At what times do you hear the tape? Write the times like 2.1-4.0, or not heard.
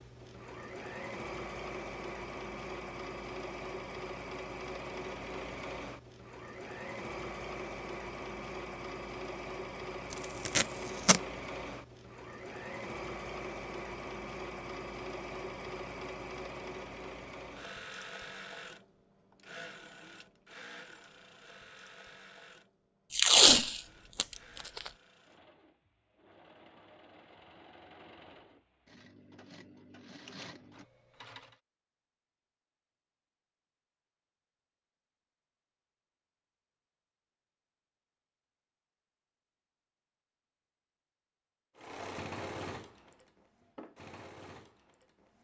10.1-11.2, 23.1-24.9.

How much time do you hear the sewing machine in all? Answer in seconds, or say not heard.
35 s.